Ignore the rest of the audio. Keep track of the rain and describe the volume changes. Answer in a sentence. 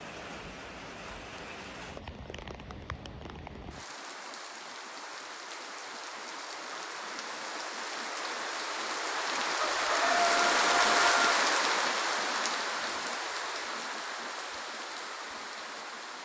The loudness of the rain goes up, then down.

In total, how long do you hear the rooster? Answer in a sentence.
The rooster can be heard for 2 seconds in total.